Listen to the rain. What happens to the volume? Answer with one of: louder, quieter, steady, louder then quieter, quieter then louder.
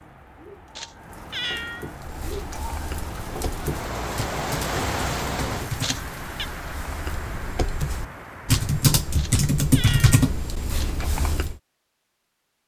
louder then quieter.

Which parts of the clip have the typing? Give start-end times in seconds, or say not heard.
2.0-11.6.